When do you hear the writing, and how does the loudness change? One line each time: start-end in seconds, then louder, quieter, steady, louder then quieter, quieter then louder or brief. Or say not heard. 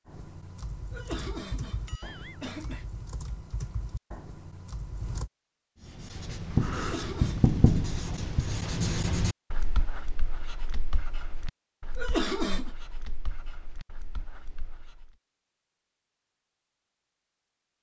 5.8-15.1 quieter.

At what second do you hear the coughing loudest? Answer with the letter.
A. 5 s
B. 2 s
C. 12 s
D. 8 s
C.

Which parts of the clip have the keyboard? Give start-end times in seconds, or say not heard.
0.1-5.3.